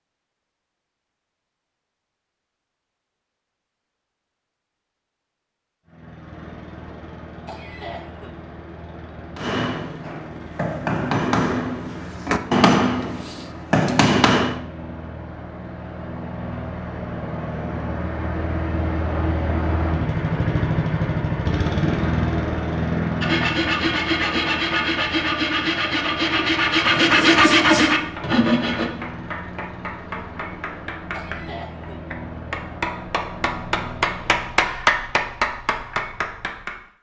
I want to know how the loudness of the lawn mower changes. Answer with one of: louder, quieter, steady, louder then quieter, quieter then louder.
louder then quieter.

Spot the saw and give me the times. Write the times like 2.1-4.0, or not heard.
23.2-28.9.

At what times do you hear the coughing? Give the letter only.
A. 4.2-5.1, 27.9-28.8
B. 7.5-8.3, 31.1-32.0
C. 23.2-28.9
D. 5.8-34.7
B.